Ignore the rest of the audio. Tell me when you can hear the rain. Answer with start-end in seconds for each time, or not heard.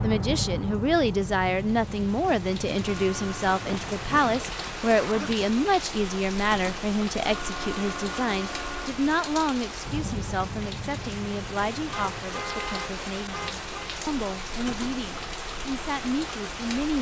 0.0-16.9.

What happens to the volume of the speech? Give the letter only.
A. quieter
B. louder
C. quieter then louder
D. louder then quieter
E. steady
A.